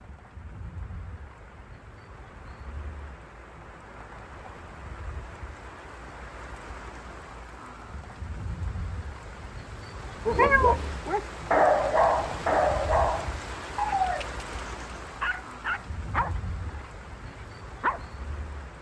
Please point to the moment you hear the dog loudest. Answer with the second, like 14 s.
12 s.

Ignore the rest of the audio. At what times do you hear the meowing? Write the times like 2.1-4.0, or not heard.
10.3-11.2.